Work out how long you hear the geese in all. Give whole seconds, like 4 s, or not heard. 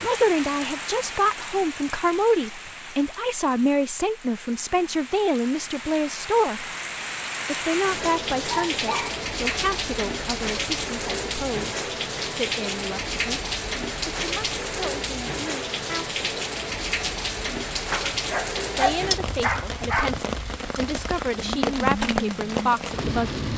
not heard.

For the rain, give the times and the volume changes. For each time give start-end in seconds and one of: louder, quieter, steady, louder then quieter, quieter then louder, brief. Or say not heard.
0.0-23.5 louder.